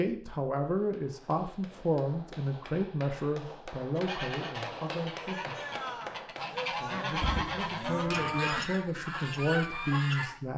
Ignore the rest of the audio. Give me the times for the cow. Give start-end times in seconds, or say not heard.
7.2-8.7.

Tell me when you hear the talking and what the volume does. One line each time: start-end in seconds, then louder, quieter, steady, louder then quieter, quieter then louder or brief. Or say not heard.
0.0-10.5 quieter then louder.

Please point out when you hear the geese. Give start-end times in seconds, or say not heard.
4.0-10.4.